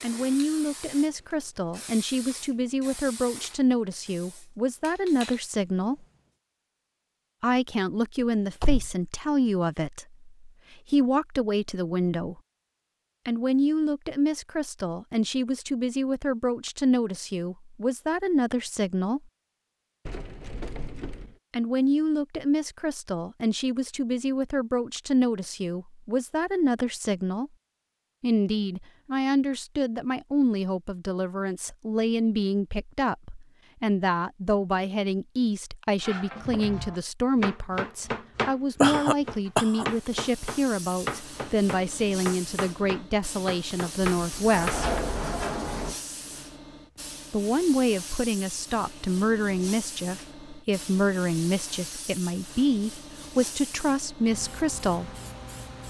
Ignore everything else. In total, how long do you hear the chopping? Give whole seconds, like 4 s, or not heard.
9 s.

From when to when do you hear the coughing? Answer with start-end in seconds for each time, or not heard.
38.8-39.9.